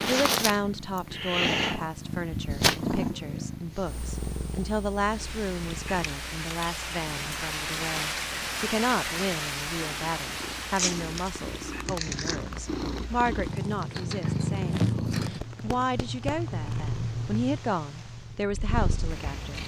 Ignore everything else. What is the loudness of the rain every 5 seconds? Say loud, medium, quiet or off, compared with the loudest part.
off, loud, medium, quiet.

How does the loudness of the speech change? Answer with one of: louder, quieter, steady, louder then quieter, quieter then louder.
steady.